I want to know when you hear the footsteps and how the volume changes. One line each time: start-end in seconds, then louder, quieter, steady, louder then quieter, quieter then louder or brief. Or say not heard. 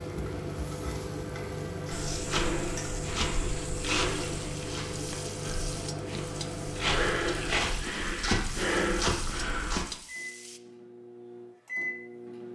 1.9-9.8 quieter then louder.